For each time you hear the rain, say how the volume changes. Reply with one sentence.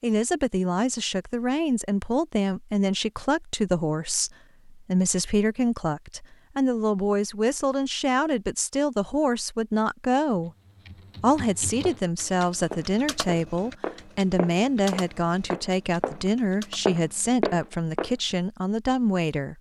You can't hear the rain here.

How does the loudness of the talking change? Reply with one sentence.
The loudness of the talking stays about the same.